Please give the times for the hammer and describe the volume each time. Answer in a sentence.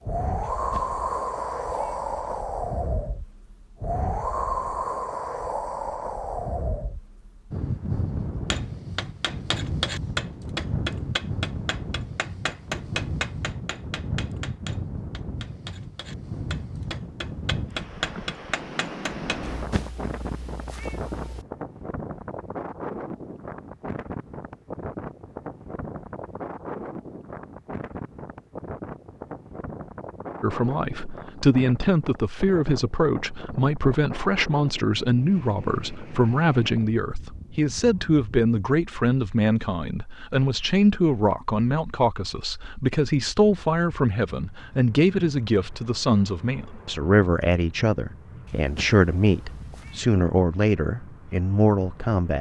You can hear the hammer from 8.5 to 19.4 s, getting quieter then louder.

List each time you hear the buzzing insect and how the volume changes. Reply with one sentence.
The buzzing insect can't be heard in this clip.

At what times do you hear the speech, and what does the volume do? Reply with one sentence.
You can hear the speech from 30.4 to 52.3 s, at a steady volume.